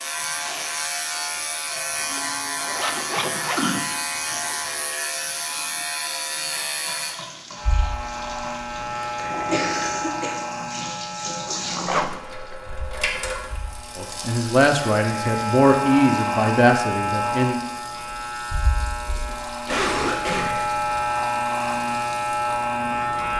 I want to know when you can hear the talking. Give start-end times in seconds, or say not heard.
13.9-17.6.